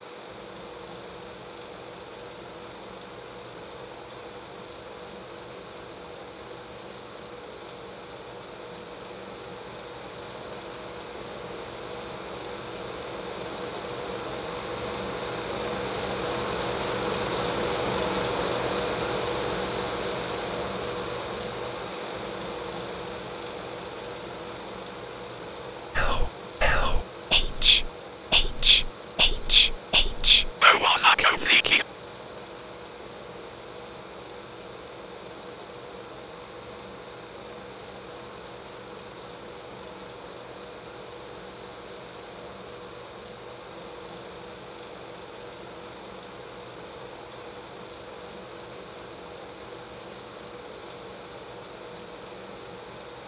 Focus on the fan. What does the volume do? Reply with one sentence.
The volume of the fan goes up, then down.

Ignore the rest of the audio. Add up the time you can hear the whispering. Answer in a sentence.
The whispering can be heard for 6 seconds in total.